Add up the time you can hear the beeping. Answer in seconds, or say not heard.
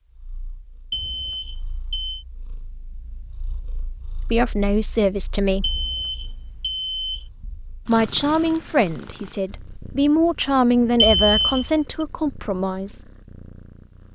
4 s.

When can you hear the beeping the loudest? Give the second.
11 s.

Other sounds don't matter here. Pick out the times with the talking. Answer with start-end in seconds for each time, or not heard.
4.2-5.8, 7.8-13.1.